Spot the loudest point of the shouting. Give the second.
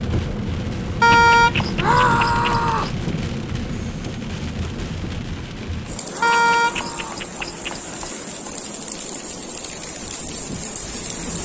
2 s.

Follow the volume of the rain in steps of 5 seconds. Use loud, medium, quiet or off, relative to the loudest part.
loud, medium, loud.